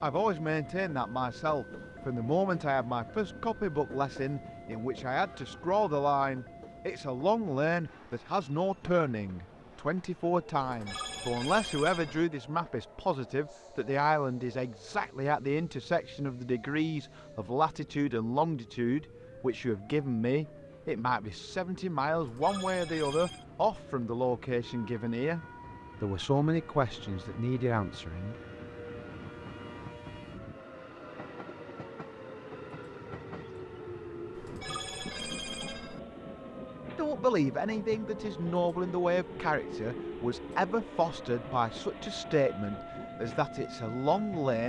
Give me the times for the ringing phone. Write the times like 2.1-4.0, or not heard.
10.6-12.2, 22.1-23.4, 34.4-36.0.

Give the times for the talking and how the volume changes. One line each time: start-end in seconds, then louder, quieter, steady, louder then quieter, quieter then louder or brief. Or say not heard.
0.0-28.4 steady
37.0-44.6 steady.